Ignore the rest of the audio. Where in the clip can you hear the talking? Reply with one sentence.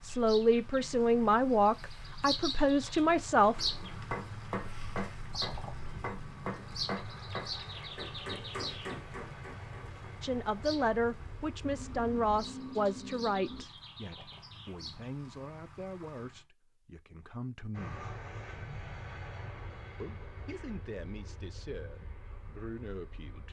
The talking can be heard from 0.0 to 3.5 s, from 10.2 to 18.1 s and from 20.0 to 23.4 s.